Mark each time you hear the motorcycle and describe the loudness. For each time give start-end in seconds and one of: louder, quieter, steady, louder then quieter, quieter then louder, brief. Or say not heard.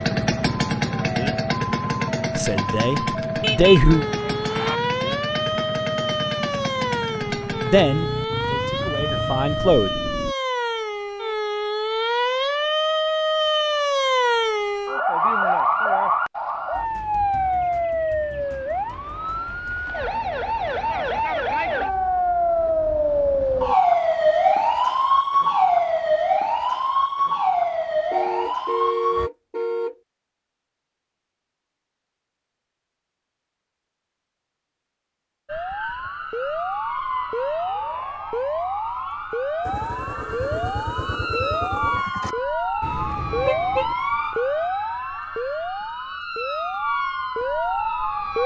0.0-10.3 quieter
39.6-42.4 brief.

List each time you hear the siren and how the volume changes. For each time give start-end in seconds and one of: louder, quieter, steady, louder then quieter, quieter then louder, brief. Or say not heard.
0.0-29.3 louder
35.5-48.4 steady.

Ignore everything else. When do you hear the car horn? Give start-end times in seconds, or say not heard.
3.4-4.8, 28.1-29.9, 42.8-44.0.